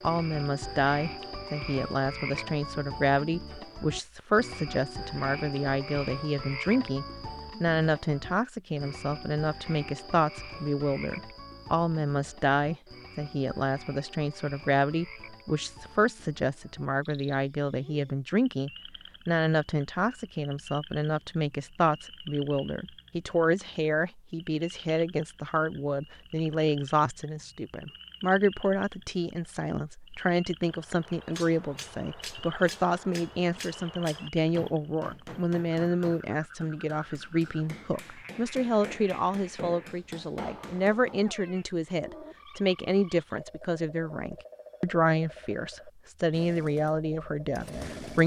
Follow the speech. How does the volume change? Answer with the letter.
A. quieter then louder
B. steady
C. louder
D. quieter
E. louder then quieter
B.